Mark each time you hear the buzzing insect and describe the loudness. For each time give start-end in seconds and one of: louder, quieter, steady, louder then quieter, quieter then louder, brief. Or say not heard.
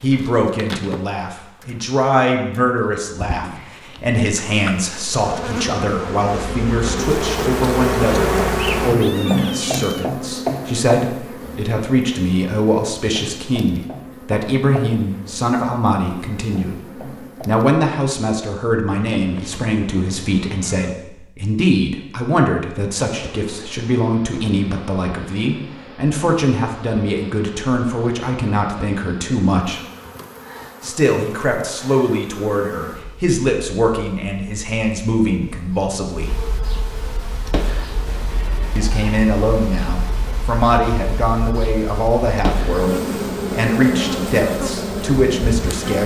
0.0-17.8 louder then quieter
23.1-46.0 louder.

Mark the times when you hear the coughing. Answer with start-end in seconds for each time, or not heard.
not heard.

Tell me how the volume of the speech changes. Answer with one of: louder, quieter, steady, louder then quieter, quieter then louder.
steady.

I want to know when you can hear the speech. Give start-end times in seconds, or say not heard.
0.0-29.8, 30.8-36.4, 38.8-46.0.